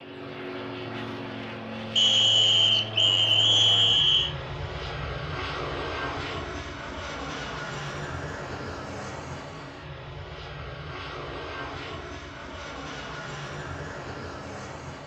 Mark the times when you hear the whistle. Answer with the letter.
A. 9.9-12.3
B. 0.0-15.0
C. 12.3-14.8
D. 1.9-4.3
D.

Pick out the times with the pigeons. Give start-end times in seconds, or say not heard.
not heard.